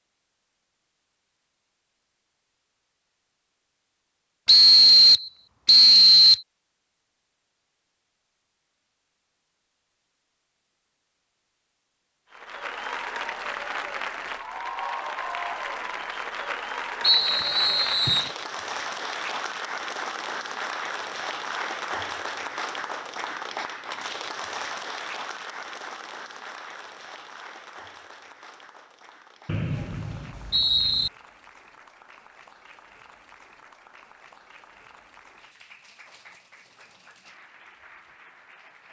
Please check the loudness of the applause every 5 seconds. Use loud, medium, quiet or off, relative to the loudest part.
off, off, loud, loud, loud, medium, quiet, quiet.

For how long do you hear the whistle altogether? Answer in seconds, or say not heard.
5 s.